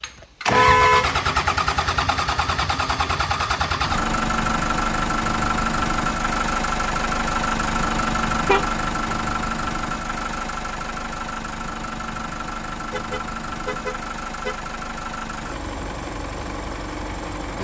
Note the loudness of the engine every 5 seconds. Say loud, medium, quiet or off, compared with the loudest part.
loud, loud, medium, medium.